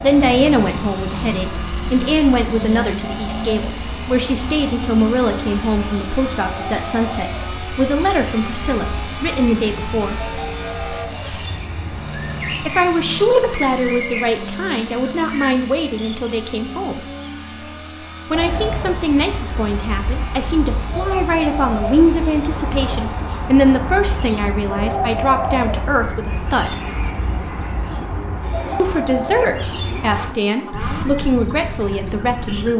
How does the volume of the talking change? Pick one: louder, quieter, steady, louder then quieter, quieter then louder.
steady.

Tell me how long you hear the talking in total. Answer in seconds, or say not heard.
27 s.